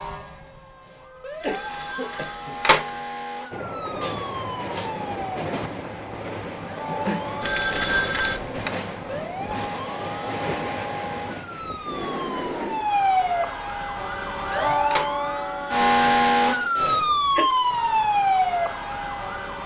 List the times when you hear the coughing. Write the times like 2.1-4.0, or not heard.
0.8-2.5, 16.8-17.4.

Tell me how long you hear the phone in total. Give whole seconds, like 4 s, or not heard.
4 s.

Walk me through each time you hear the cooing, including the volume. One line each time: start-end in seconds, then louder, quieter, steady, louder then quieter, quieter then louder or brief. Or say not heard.
not heard.